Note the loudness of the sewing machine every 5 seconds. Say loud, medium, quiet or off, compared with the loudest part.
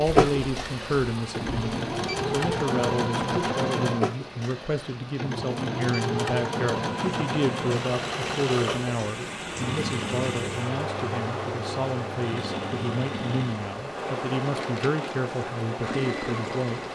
loud, loud, medium, medium.